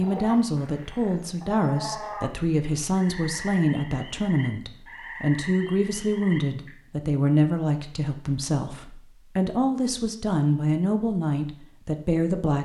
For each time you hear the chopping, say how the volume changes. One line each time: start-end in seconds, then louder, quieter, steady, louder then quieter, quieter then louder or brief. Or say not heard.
not heard.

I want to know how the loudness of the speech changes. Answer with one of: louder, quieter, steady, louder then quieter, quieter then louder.
steady.